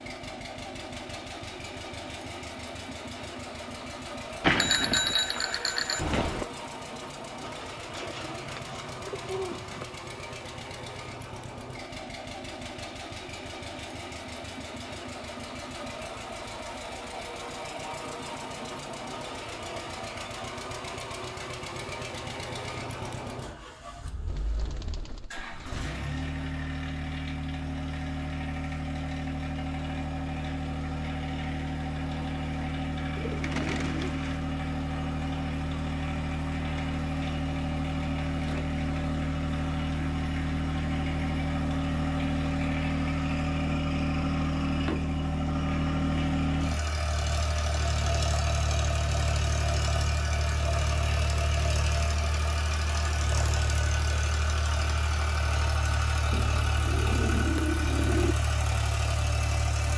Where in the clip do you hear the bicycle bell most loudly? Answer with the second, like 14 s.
5 s.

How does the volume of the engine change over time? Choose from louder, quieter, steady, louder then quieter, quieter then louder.
louder.